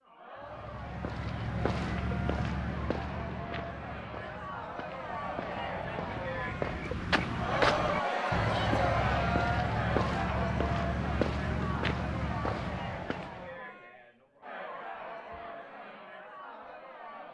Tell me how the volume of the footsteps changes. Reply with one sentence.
The loudness of the footsteps goes down, then up.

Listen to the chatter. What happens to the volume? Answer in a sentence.
The loudness of the chatter goes up, then down.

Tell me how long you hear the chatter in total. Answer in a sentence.
You can hear the chatter for 17 seconds altogether.